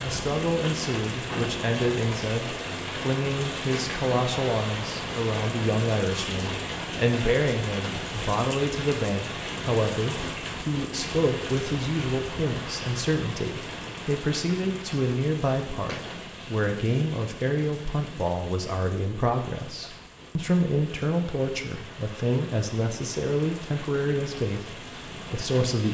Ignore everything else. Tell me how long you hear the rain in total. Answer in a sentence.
The rain can be heard for 26 seconds in total.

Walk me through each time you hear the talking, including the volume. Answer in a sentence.
You can hear the talking from 0.0 to 25.9 s, at a steady volume.